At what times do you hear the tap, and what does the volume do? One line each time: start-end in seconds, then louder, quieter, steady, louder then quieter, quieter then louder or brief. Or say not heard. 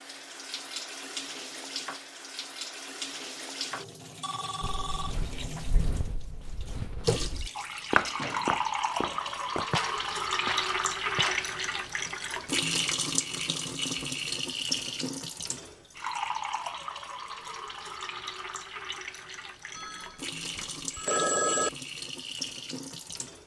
0.0-23.4 louder then quieter.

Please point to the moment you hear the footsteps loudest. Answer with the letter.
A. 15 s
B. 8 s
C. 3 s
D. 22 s
B.